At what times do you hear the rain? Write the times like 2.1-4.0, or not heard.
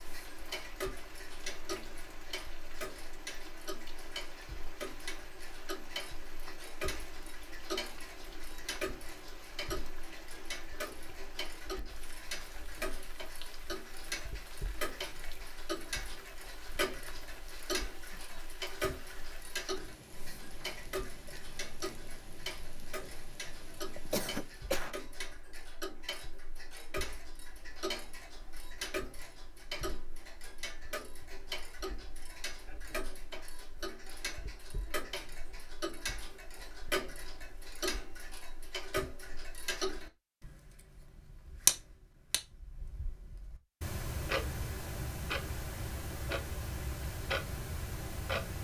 0.0-24.8.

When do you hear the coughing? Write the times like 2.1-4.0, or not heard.
24.1-24.9.